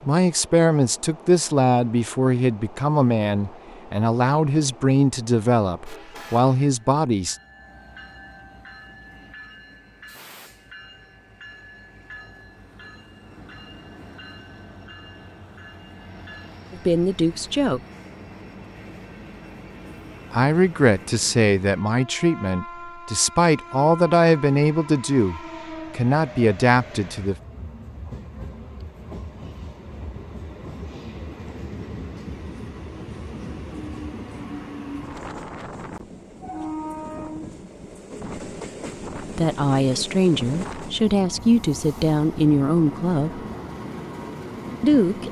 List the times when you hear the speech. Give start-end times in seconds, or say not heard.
0.0-7.3, 16.7-17.8, 20.3-27.4, 39.2-43.4, 44.8-45.2.